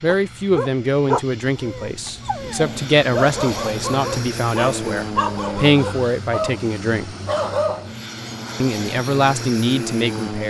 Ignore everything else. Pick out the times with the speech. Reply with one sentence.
The speech can be heard from 0.0 to 7.2 s and from 8.6 to 10.4 s.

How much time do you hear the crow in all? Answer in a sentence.
You can't hear the crow here.